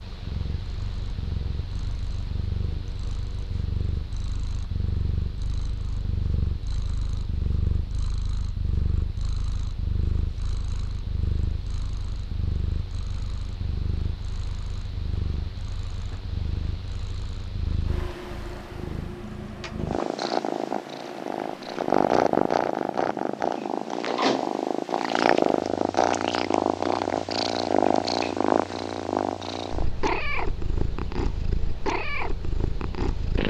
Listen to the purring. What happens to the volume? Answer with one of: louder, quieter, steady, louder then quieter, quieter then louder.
louder.